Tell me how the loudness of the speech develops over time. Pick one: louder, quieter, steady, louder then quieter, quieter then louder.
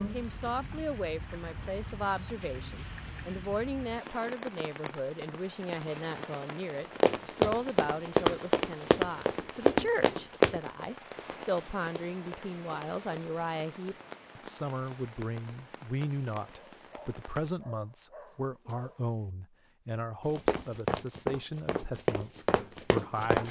steady.